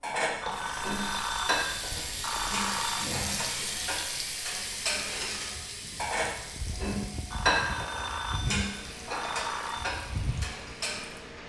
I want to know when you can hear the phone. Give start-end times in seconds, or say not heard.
0.4-3.1, 7.3-9.9.